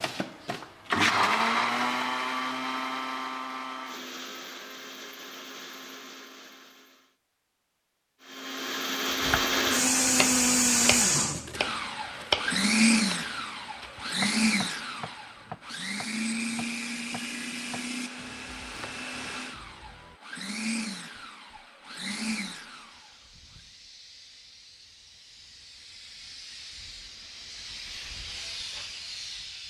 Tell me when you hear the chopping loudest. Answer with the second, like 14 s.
12 s.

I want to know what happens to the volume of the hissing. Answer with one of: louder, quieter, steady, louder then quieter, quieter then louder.
louder.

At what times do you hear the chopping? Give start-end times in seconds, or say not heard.
9.2-20.2.